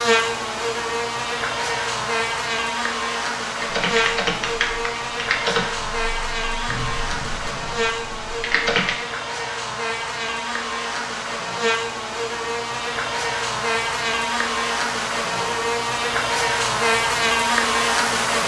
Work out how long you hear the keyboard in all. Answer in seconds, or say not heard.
5 s.